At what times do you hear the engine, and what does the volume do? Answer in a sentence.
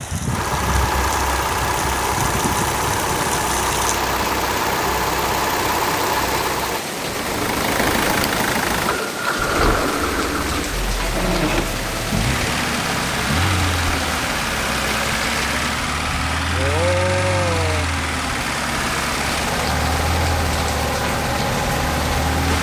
The engine can be heard from 0.1 to 22.5 s, at a steady volume.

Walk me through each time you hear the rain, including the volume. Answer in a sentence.
You can hear the rain from 0.0 to 22.5 s, at a steady volume.